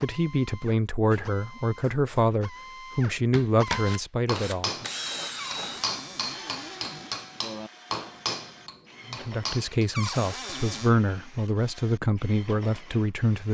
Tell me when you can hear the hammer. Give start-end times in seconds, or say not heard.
3.0-9.8.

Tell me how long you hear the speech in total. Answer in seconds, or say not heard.
9 s.